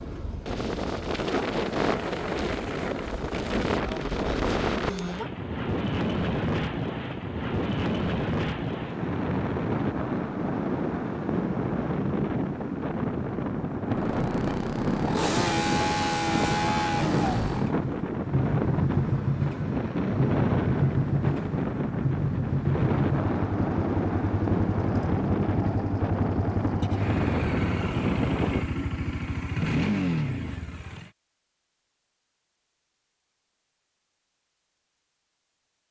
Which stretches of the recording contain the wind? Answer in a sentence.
You can hear the wind from 0.0 to 28.7 s.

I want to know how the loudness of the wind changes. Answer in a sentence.
The volume of the wind stays about the same.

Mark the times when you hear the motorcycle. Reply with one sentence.
The motorcycle can be heard from 13.9 to 31.1 s.